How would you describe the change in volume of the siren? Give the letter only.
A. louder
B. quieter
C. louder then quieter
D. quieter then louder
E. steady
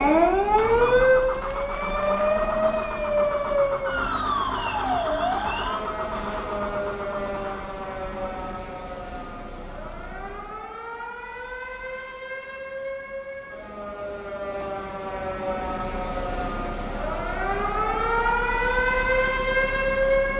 D.